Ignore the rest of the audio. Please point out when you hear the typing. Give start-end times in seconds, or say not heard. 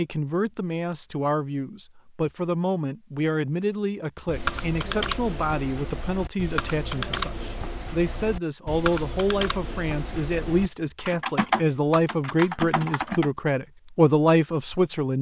4.2-13.3.